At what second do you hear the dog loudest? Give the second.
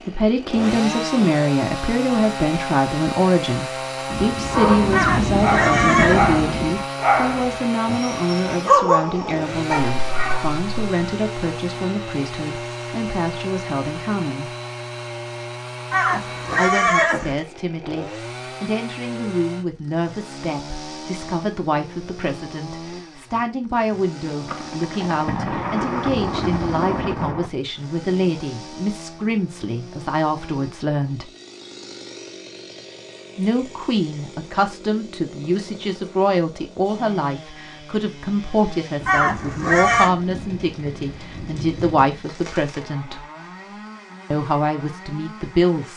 9 s.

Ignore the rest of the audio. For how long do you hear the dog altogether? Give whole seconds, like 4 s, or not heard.
6 s.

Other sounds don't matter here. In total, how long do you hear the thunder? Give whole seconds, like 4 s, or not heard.
9 s.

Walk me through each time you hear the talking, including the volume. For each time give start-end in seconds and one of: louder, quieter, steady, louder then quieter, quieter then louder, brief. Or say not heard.
0.1-14.6 quieter
16.6-31.3 steady
33.4-43.2 steady
44.3-45.9 brief.